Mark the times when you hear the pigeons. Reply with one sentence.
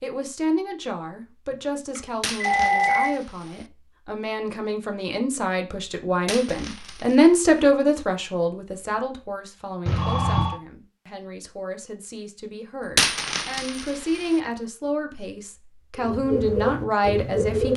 The pigeons can be heard from 15.9 to 17.7 s.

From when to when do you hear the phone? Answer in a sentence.
The phone can be heard from 1.5 to 3.1 s and from 9.8 to 10.6 s.